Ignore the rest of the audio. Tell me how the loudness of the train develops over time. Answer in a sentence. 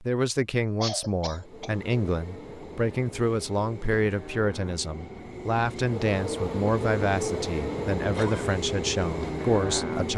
The volume of the train goes up.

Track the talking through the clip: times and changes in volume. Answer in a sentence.
You can hear the talking from 0.0 to 10.1 s, at a steady volume.